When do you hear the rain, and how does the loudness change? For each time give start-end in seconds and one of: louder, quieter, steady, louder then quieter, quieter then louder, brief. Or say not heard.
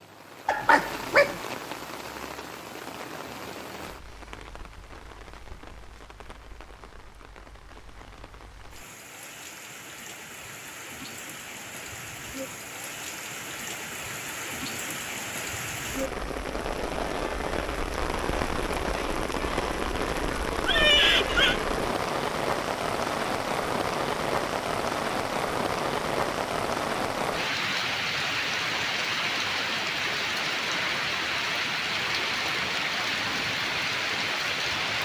0.0-35.0 louder.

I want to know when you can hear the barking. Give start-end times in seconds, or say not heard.
0.5-1.4.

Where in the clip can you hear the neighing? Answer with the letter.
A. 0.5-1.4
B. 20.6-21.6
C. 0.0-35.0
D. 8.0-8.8
B.